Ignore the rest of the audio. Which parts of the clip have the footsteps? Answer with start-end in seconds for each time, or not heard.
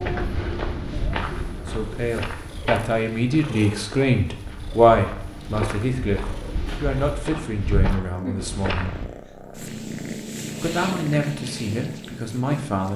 0.0-9.1.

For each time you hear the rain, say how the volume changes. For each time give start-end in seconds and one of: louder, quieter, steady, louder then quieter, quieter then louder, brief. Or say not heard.
not heard.